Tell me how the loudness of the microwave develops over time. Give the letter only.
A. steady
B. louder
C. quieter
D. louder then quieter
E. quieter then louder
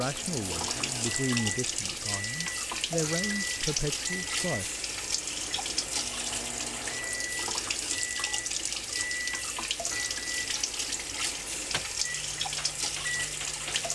A.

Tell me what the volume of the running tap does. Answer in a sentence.
The loudness of the running tap stays about the same.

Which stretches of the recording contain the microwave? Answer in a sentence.
You can hear the microwave from 0.0 to 13.9 s.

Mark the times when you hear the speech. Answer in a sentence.
You can hear the speech from 0.0 to 4.7 s.